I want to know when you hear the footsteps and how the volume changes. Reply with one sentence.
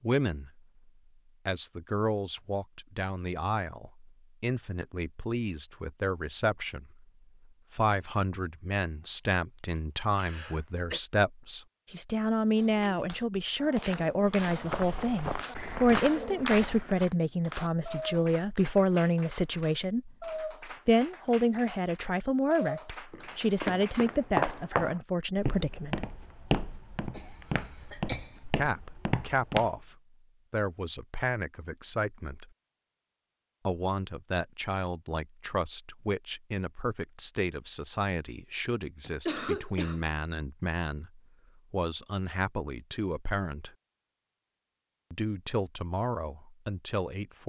The footsteps can be heard briefly from 14.2 to 17.1 s; and from 23.1 to 29.7 s, getting quieter.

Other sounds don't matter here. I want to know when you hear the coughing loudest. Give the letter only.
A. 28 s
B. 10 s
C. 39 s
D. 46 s
C.